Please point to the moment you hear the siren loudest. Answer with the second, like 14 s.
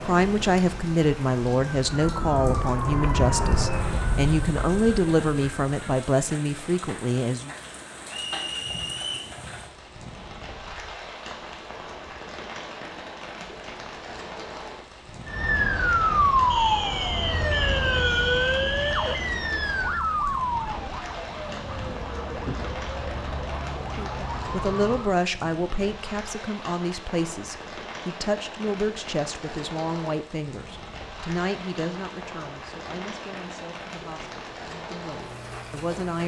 16 s.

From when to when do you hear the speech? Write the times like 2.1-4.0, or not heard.
0.0-7.5, 23.9-36.2.